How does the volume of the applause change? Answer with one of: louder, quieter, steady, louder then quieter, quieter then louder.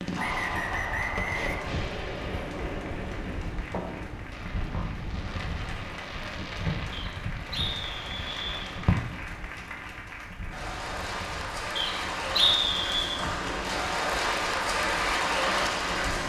louder.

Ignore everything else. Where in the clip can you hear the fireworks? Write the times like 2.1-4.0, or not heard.
0.0-9.2.